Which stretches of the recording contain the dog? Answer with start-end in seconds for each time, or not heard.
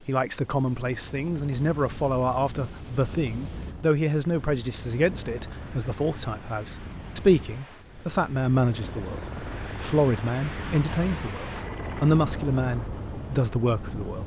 not heard.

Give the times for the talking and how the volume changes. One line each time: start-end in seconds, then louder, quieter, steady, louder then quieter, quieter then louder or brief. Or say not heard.
0.1-14.2 steady.